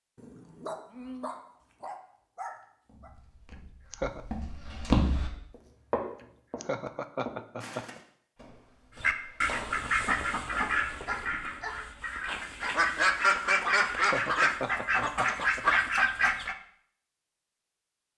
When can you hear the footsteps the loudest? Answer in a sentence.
The loudest moment of the footsteps is at 5 seconds.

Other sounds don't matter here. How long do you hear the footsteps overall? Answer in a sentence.
The footsteps can be heard for 8 seconds in total.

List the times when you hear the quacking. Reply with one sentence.
The quacking can be heard from 8.9 to 16.6 s.